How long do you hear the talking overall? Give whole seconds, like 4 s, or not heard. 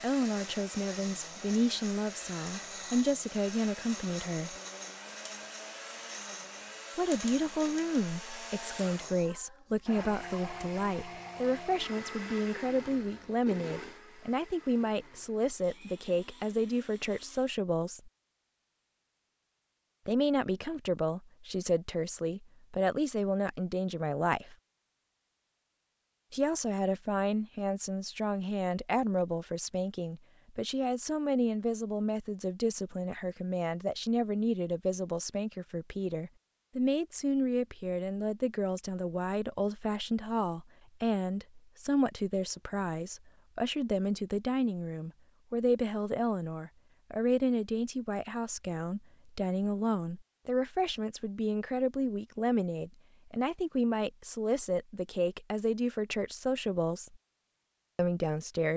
52 s.